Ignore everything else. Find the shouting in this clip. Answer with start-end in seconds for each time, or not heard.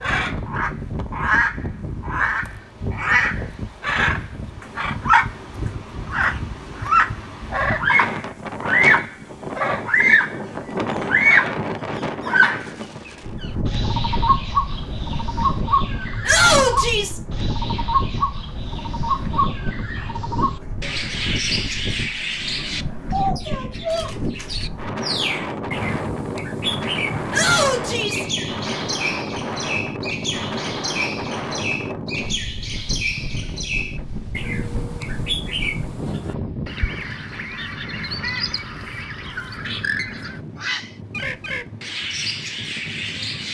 16.2-17.2, 27.3-28.2.